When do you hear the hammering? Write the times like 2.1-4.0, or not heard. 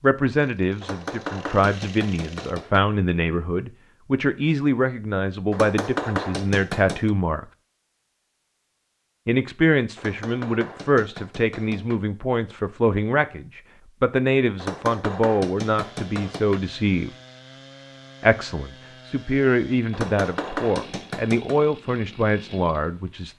0.8-2.8, 5.5-7.1, 9.9-12.0, 14.6-16.6, 19.9-21.6.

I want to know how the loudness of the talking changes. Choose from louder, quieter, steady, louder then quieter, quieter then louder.
steady.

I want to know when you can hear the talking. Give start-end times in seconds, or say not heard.
0.0-7.5, 9.2-17.1, 18.2-23.3.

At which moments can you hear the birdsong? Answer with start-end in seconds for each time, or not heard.
not heard.